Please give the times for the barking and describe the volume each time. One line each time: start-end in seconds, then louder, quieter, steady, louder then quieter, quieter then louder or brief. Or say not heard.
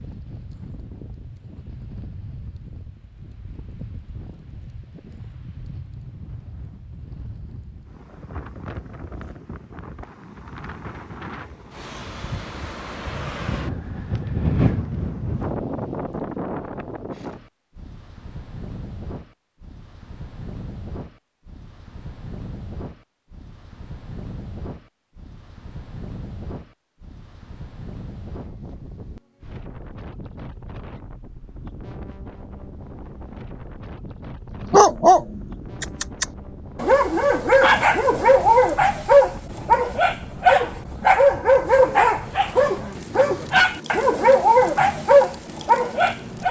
34.6-46.4 steady.